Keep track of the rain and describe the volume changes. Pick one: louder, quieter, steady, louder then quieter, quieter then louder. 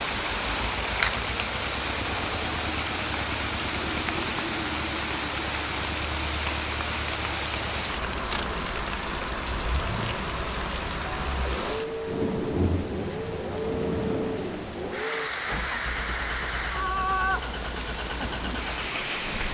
steady.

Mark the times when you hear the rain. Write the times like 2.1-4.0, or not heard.
0.0-19.4.